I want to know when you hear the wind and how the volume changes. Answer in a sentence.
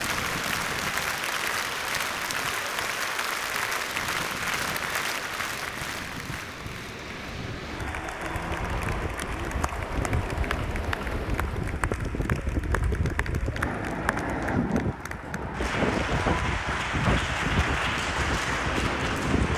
You can hear the wind from 0.0 to 19.5 s, getting louder.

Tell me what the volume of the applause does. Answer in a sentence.
The volume of the applause goes down, then up.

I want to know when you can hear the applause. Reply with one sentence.
The applause can be heard from 0.0 to 19.5 s.